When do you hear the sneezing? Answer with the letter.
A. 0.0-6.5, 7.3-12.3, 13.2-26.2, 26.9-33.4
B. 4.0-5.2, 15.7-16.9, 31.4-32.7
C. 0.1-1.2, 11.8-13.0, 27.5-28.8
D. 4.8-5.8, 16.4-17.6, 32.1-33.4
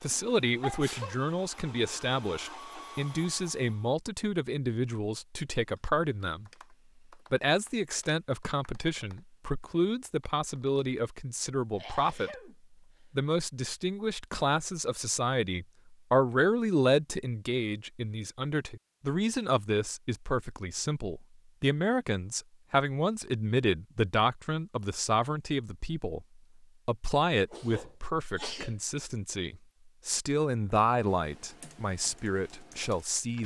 C.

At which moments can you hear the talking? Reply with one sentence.
You can hear the talking from 0.0 to 6.5 s, from 7.3 to 12.3 s, from 13.2 to 26.2 s and from 26.9 to 33.4 s.